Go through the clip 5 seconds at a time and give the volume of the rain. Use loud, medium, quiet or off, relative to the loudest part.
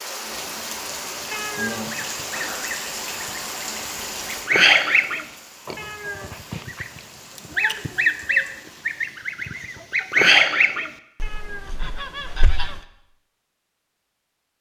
loud, quiet, off.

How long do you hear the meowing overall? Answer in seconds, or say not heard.
4 s.